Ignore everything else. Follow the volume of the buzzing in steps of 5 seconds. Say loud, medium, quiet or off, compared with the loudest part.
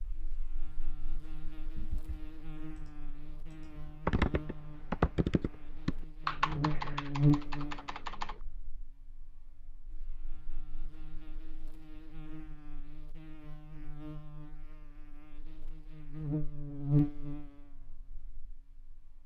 quiet, loud, quiet, loud.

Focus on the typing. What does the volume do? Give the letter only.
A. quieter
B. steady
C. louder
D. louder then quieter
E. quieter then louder
D.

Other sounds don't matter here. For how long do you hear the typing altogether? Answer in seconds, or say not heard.
7 s.